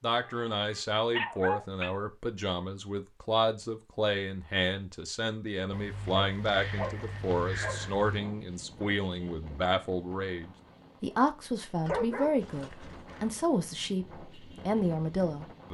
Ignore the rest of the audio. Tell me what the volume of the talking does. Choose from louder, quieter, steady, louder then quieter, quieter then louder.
steady.